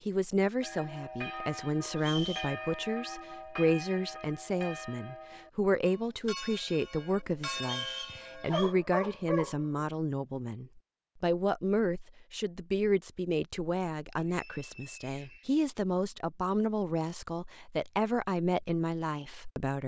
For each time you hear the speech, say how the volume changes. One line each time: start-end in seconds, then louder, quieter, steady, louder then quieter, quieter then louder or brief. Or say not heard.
0.1-19.8 steady.